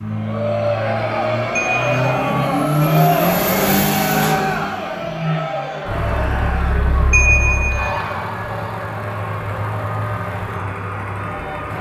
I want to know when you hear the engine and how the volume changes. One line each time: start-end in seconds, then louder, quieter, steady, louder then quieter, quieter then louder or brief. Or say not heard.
0.0-11.7 louder then quieter.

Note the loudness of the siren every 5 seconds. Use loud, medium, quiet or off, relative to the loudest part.
off, loud, loud.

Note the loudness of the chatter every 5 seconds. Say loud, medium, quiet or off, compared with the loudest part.
loud, medium, off.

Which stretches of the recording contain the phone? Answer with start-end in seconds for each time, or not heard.
1.6-2.1, 7.1-8.0.